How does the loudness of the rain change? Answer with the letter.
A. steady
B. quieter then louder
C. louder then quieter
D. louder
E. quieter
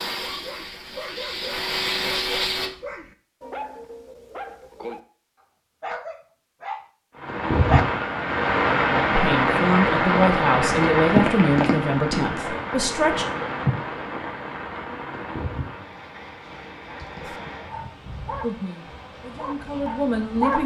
E.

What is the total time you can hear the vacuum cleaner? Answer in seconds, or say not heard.
3 s.